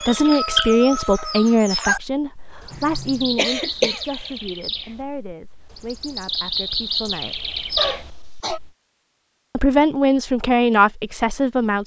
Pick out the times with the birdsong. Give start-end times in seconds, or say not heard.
0.0-8.7.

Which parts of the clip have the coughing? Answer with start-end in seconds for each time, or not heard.
2.7-4.0, 7.8-8.6.